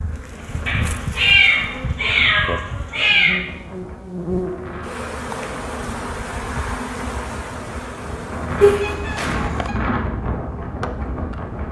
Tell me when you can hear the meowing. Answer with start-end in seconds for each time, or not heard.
0.7-3.4, 8.6-9.7.